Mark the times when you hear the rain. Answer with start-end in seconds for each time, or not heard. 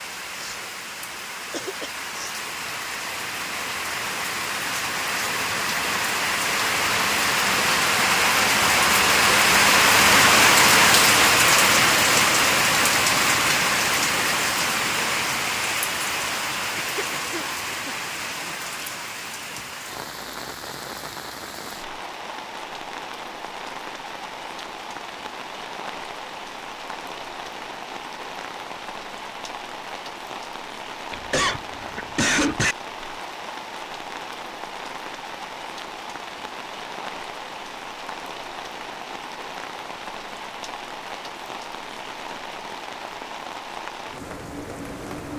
0.0-45.3.